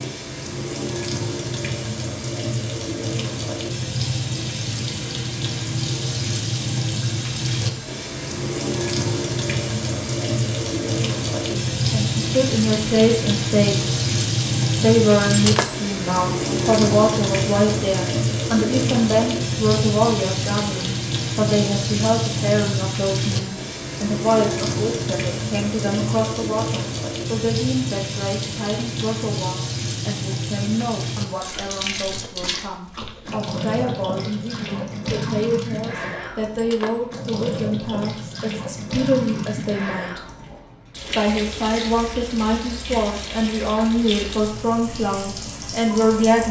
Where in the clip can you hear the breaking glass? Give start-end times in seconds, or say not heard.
15.3-15.8, 36.5-37.0.